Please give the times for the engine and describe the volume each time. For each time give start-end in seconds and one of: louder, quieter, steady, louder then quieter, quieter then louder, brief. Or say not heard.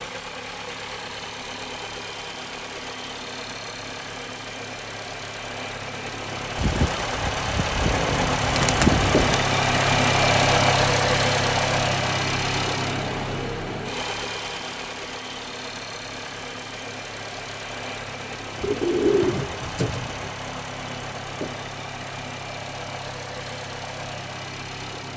0.0-25.1 louder then quieter.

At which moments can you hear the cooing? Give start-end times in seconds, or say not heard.
6.5-9.3, 18.6-20.3.